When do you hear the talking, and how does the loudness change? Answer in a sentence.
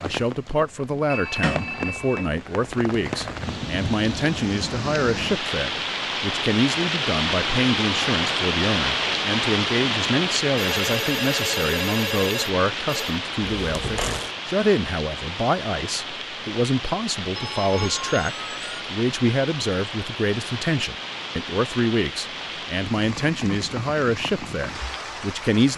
You can hear the talking from 0.0 to 25.7 s, at a steady volume.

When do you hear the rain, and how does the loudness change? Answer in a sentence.
You can hear the rain from 0.0 to 25.7 s, getting louder then quieter.